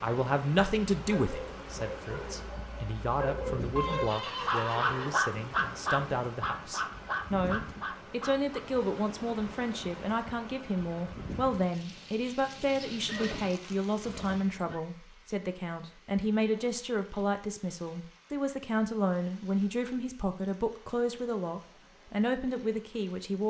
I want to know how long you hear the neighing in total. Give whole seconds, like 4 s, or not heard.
3 s.